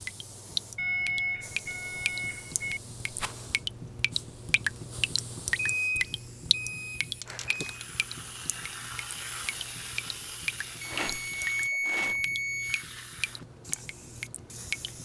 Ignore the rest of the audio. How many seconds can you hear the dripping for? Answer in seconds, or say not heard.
15 s.